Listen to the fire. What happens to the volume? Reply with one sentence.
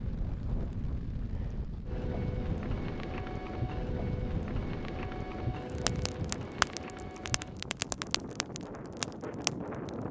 The loudness of the fire goes up.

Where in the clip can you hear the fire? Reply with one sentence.
You can hear the fire from 0.0 to 10.0 s.